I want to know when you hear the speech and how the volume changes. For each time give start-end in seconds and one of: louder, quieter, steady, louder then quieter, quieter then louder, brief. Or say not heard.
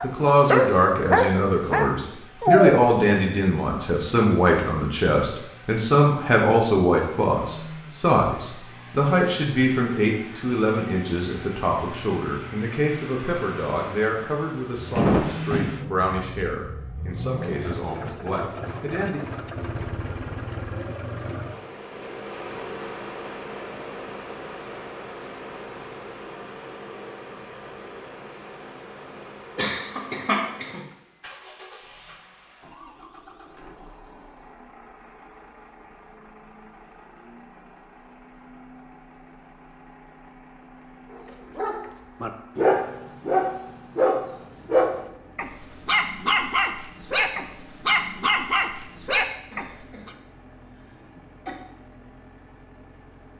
0.0-19.2 quieter.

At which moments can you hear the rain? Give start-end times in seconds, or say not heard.
not heard.